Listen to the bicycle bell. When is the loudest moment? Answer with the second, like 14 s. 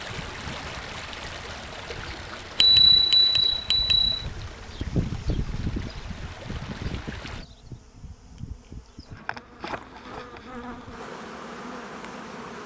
3 s.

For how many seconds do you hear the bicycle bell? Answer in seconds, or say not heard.
2 s.